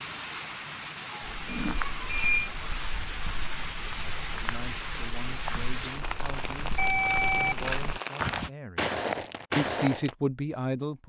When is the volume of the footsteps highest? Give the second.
9 s.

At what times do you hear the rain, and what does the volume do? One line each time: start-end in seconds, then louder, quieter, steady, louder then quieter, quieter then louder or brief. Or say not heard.
0.0-8.3 steady.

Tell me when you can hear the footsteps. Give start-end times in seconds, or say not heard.
1.2-10.2.